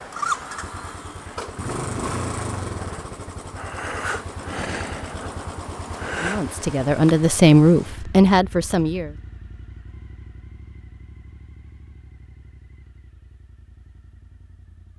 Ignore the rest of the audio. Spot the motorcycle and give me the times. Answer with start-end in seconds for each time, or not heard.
0.0-14.9.